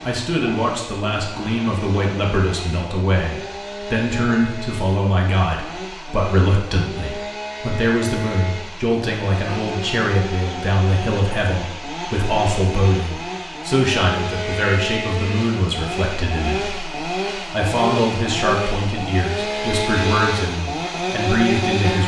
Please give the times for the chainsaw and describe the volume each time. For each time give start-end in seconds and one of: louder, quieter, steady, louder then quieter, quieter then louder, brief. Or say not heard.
0.0-22.0 louder.